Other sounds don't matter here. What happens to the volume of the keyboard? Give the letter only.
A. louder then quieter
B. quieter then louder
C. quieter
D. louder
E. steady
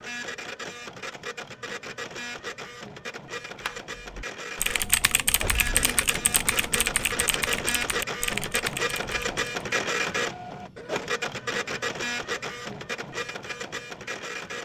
E.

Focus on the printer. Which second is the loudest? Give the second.
10 s.